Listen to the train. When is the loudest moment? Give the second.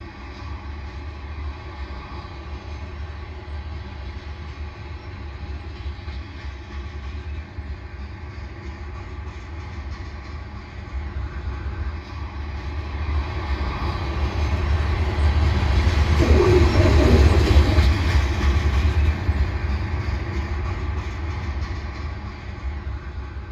17 s.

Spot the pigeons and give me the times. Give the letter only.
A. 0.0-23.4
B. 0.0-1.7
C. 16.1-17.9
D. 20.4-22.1
C.